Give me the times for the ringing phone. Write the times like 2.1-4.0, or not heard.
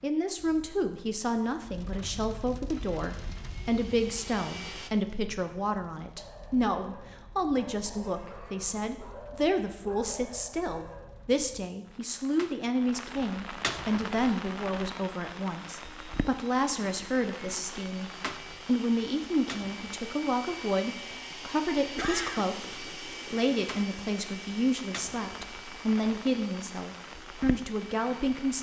not heard.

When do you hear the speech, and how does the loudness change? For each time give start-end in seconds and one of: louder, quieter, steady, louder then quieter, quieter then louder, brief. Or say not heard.
0.0-28.5 steady.